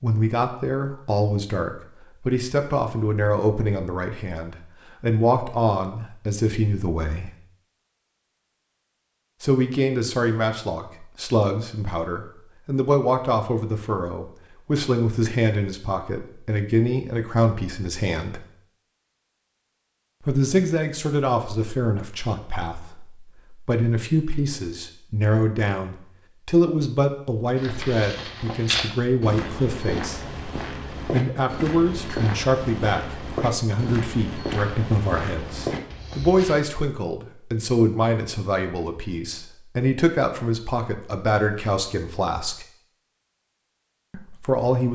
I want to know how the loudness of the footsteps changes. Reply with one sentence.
The loudness of the footsteps stays about the same.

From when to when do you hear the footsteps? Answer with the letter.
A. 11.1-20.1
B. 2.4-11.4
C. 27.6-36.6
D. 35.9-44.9
C.